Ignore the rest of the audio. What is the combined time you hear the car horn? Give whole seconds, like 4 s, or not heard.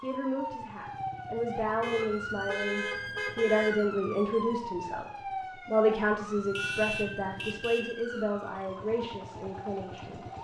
3 s.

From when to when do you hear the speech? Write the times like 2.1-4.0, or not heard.
0.0-10.2.